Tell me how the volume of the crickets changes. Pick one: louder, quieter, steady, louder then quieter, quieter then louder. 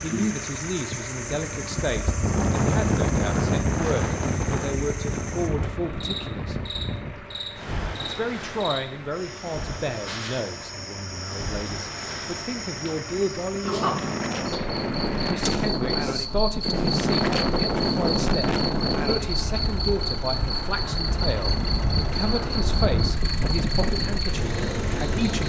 louder.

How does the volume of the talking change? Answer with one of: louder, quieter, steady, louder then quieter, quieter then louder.
steady.